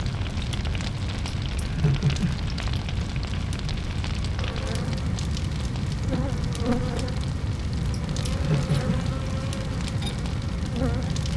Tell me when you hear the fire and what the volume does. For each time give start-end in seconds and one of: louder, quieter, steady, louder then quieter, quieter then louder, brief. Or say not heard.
0.0-11.3 steady.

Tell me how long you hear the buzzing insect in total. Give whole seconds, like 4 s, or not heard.
7 s.